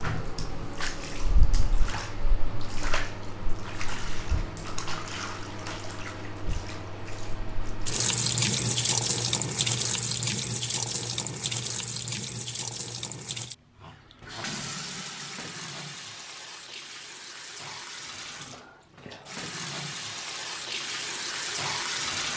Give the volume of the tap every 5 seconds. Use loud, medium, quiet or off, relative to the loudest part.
medium, loud, loud, medium, loud.